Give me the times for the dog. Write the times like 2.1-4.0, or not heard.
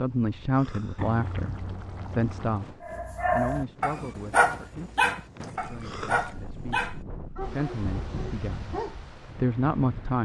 2.8-8.9.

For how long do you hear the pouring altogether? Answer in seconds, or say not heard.
3 s.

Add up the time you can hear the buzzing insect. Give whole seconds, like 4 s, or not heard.
not heard.